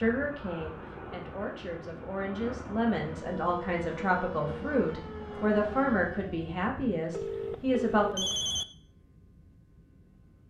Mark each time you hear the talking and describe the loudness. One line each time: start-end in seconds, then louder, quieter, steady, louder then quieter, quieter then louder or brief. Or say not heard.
0.0-8.3 louder.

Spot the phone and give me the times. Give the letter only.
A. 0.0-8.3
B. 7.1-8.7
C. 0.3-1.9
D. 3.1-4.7
B.